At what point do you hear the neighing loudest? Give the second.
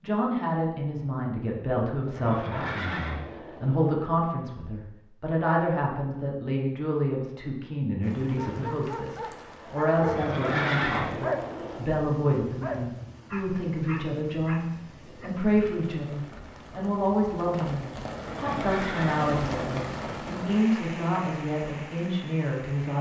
11 s.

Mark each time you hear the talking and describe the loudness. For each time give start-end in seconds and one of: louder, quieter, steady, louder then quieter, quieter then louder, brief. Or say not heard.
0.0-22.9 steady.